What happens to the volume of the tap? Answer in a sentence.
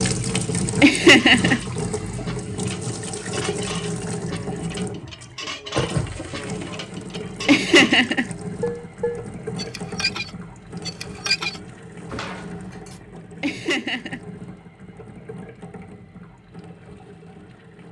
The loudness of the tap goes down.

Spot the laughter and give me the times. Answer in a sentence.
The laughter can be heard from 0.8 to 1.6 s, from 7.5 to 8.2 s and from 13.4 to 14.2 s.